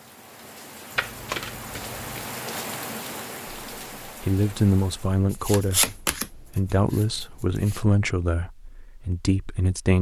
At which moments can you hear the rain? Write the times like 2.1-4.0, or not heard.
0.0-5.4.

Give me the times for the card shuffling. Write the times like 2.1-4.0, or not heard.
0.9-2.4, 5.3-7.8.